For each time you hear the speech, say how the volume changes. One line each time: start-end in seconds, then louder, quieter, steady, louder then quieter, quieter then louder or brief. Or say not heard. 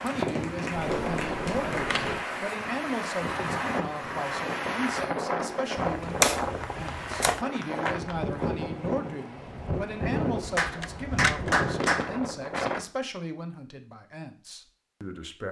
0.0-15.4 steady.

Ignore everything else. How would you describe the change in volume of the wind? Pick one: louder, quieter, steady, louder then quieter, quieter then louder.
steady.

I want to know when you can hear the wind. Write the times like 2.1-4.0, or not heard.
0.0-12.8.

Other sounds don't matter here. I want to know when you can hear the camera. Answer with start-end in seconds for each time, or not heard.
0.8-2.2, 5.8-7.4, 10.4-11.6.